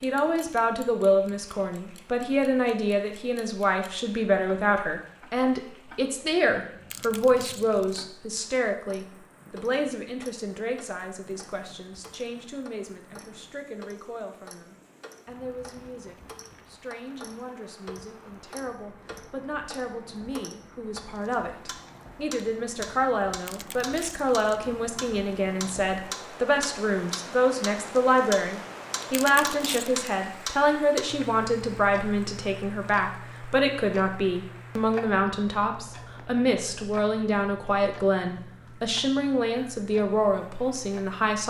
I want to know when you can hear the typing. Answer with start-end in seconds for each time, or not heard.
not heard.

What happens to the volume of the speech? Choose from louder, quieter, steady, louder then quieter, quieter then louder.
quieter then louder.